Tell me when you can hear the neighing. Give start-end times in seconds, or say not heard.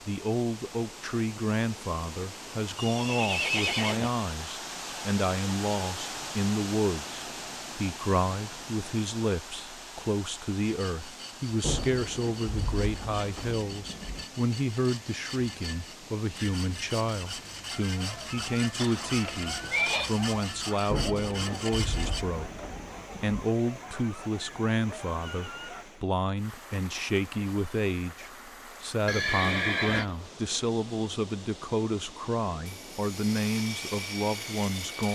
2.8-4.1, 18.8-20.1, 29.1-30.1.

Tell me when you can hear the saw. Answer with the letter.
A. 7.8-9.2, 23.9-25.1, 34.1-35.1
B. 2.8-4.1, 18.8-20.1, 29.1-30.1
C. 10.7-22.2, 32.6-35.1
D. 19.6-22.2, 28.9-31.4
C.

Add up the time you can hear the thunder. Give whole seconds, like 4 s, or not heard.
5 s.